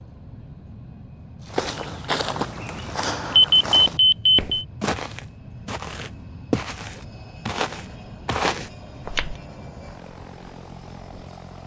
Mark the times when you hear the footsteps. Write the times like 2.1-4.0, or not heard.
1.4-9.4.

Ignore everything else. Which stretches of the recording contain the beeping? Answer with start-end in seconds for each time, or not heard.
3.4-4.7.